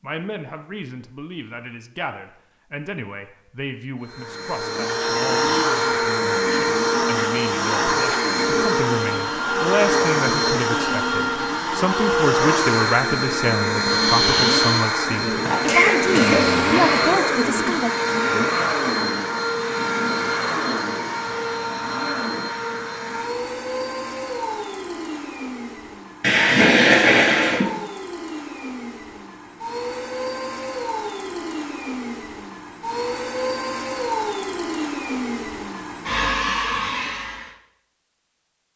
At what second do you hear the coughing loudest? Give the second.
27 s.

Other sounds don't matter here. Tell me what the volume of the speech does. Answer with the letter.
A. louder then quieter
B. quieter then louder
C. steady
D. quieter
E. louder
E.